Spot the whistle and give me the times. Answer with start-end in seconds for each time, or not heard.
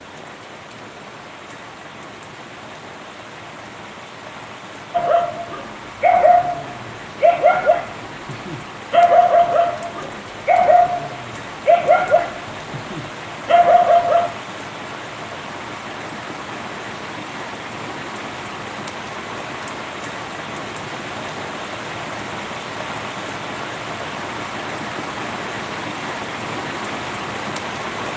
not heard.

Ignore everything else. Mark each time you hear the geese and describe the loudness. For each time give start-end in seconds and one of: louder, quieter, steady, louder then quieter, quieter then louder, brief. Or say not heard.
not heard.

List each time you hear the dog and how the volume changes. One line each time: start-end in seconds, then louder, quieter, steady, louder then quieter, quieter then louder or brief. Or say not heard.
4.9-14.3 steady.